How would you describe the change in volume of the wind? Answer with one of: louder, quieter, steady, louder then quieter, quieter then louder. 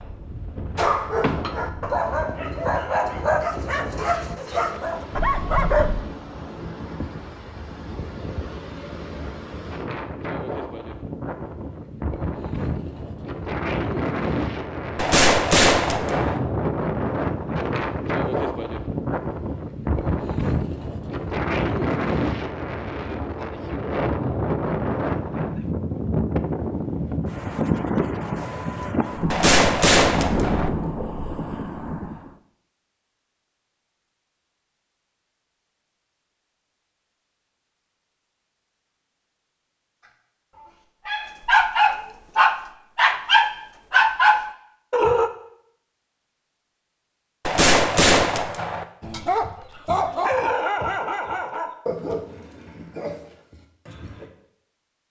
louder.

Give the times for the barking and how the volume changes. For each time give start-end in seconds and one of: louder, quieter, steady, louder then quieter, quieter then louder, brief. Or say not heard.
0.8-6.0 steady
40.0-45.3 louder
49.0-54.3 quieter.